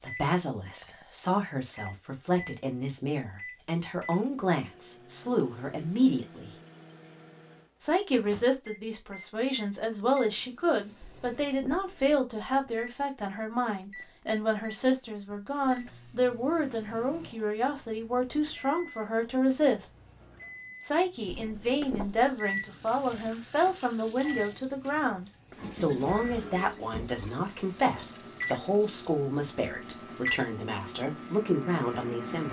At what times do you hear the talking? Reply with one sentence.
The talking can be heard from 0.0 to 6.5 s, from 7.8 to 19.9 s and from 20.8 to 32.4 s.